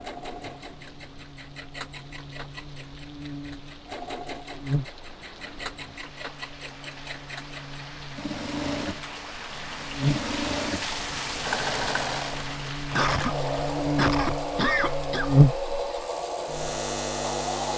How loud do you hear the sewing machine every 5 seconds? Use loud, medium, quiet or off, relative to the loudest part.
medium, medium, loud, loud.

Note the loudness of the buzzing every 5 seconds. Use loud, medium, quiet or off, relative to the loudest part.
quiet, quiet, medium, loud.